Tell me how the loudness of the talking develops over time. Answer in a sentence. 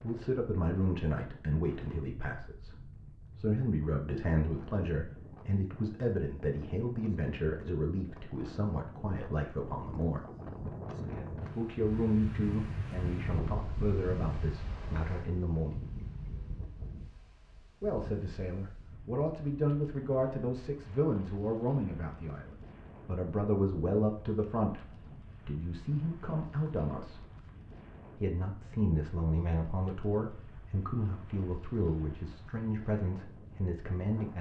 The loudness of the talking stays about the same.